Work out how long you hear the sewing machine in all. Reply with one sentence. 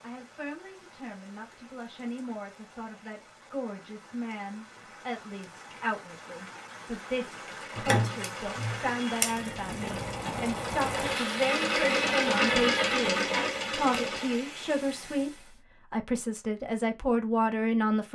The sewing machine can be heard for 7 seconds in total.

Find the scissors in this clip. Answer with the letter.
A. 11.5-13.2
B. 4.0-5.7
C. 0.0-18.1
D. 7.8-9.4
D.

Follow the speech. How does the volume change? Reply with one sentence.
The volume of the speech goes up.